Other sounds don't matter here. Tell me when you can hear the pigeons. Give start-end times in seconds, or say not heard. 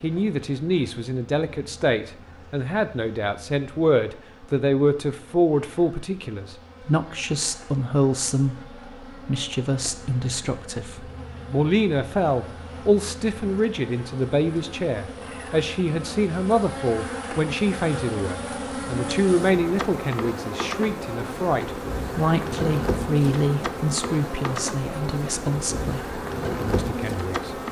not heard.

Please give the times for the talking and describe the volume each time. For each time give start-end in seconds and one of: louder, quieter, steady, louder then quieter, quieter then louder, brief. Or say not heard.
0.0-27.6 steady.